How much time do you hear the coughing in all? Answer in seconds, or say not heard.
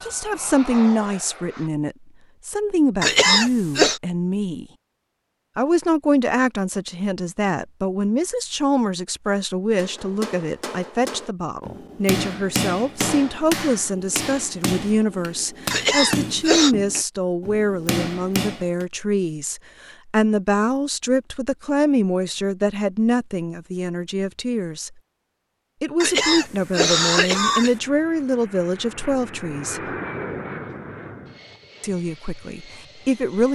4 s.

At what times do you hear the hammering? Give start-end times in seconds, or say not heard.
9.8-18.9.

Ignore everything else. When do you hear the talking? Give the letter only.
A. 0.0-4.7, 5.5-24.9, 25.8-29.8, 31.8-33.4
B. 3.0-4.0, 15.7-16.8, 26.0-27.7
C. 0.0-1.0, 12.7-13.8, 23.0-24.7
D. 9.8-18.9
A.